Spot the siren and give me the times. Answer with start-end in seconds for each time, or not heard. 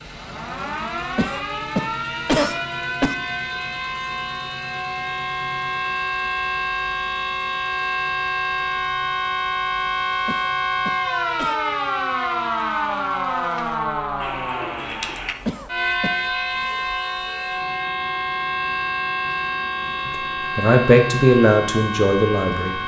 0.0-22.8.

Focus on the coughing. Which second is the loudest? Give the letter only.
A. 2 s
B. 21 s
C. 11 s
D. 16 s
A.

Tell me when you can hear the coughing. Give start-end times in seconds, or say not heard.
1.1-3.1, 10.2-11.6, 15.4-16.1.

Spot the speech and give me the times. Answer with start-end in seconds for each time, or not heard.
20.1-22.8.